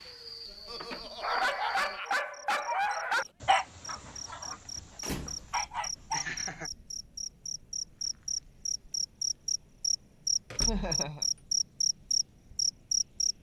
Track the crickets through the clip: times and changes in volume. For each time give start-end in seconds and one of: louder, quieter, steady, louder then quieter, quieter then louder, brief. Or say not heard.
0.0-13.3 louder.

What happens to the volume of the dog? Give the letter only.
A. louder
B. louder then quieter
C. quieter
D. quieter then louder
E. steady
D.